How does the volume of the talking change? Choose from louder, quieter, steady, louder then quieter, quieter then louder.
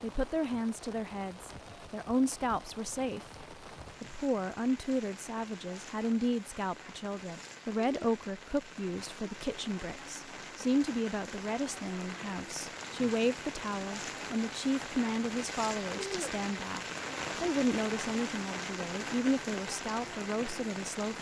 steady.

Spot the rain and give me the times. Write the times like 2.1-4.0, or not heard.
0.0-21.1.